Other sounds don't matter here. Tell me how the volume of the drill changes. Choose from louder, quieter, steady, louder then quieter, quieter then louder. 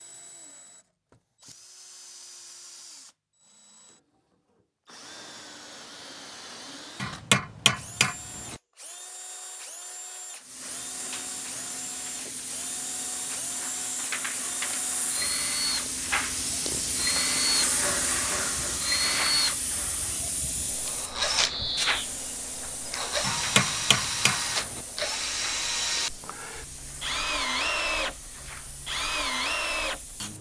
louder.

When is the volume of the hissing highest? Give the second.
18 s.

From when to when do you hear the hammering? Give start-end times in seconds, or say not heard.
7.0-8.6, 23.2-24.8.